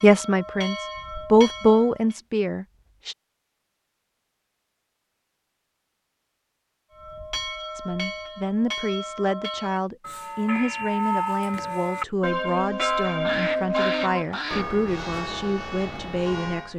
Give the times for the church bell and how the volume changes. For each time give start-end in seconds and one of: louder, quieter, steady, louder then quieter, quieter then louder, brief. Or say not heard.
0.0-2.2 brief
6.9-16.7 louder then quieter.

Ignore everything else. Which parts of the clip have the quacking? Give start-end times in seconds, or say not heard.
13.1-14.7.